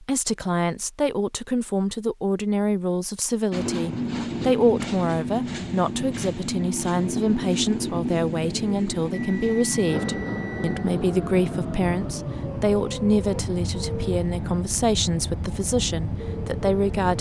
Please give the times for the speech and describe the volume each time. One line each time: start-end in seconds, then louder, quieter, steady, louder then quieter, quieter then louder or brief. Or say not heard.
0.0-17.1 steady.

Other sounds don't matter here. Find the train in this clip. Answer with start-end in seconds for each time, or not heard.
3.5-17.1.